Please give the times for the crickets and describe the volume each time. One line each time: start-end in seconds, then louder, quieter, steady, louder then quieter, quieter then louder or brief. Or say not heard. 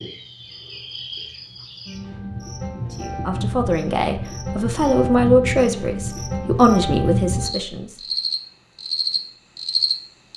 0.0-10.3 louder.